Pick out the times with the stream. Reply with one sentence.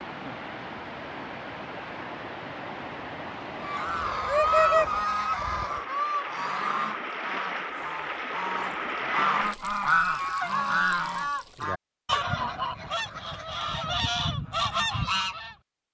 You can hear the stream from 0.0 to 11.7 s.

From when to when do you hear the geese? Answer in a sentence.
You can hear the geese from 3.6 to 15.6 s.